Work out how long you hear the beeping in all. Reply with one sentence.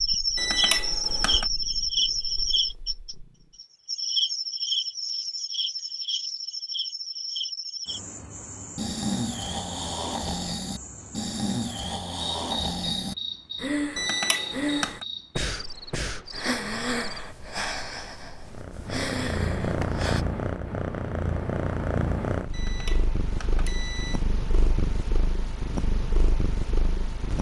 The beeping can be heard for 4 seconds in total.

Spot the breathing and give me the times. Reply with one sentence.
The breathing can be heard from 8.8 to 20.2 s.